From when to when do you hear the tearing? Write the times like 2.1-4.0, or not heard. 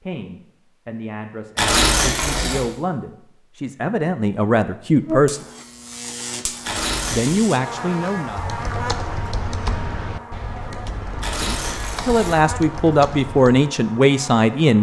1.6-2.6, 6.7-7.5, 11.2-12.4.